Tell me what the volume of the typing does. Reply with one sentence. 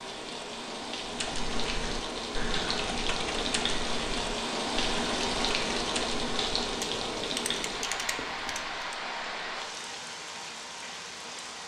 The volume of the typing stays about the same.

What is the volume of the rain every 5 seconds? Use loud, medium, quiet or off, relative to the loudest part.
loud, loud, medium.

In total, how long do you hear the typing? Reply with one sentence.
You can hear the typing for 8 seconds altogether.